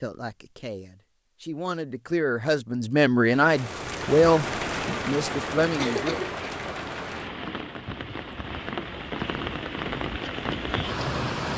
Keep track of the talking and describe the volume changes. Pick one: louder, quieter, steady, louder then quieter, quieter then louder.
louder then quieter.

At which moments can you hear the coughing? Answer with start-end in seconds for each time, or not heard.
5.8-6.5.